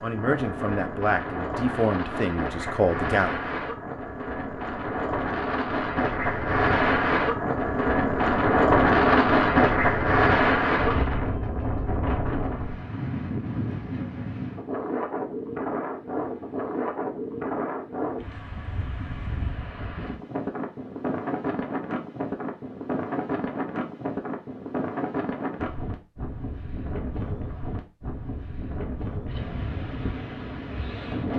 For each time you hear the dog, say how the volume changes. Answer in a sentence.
You can't hear the dog here.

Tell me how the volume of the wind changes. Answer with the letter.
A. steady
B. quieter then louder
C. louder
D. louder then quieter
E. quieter
D.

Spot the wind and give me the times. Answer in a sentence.
The wind can be heard from 0.0 to 31.3 s.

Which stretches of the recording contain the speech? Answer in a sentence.
You can hear the speech from 0.0 to 3.4 s.